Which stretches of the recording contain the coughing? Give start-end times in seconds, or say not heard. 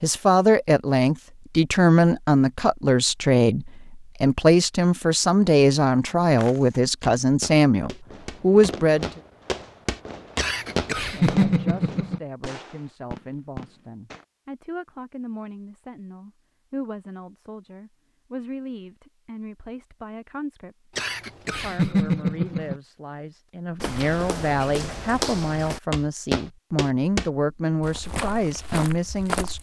10.3-12.2, 20.9-22.8.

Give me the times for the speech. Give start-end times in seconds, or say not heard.
0.0-9.1, 11.2-29.5.